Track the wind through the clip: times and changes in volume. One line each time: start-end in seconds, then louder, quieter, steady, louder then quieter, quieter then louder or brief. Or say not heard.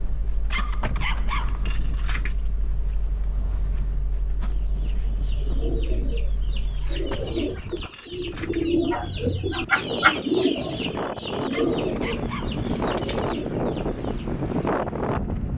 0.0-15.5 louder.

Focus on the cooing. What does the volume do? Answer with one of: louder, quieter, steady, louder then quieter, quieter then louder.
louder then quieter.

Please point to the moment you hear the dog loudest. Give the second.
1 s.